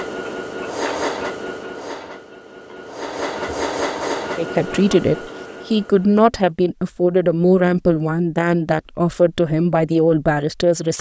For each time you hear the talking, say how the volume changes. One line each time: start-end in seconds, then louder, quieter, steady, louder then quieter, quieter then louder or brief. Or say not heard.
4.3-10.9 steady.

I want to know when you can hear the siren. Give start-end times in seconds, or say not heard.
not heard.